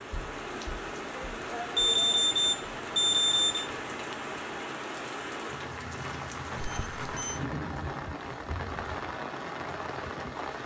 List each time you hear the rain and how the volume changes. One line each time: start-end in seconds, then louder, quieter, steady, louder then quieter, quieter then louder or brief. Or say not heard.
0.0-10.6 steady.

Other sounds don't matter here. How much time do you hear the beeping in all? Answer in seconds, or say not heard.
3 s.